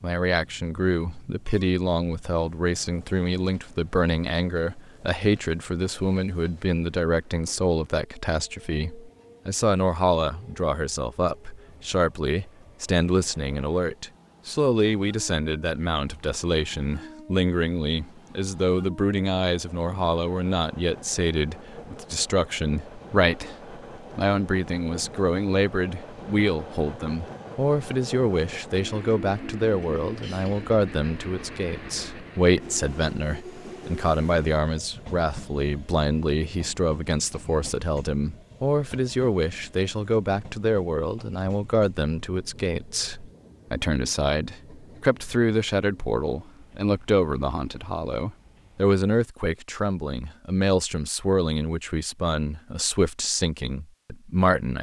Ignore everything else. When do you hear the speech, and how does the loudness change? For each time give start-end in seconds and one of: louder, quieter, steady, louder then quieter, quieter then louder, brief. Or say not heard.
0.0-54.7 steady.